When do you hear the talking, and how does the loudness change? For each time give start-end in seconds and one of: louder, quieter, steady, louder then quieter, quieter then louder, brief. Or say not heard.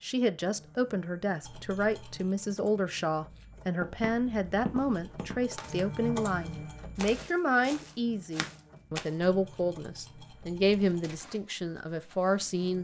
0.0-12.7 steady.